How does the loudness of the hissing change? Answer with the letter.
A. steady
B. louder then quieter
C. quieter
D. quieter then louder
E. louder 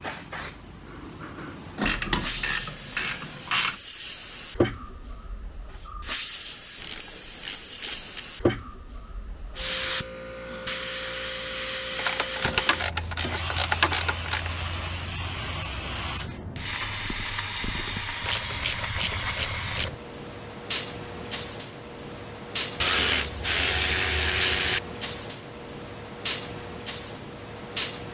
A.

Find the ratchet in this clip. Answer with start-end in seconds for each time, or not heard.
1.8-3.8, 6.8-8.2, 11.9-14.5, 18.2-19.9, 22.8-24.8.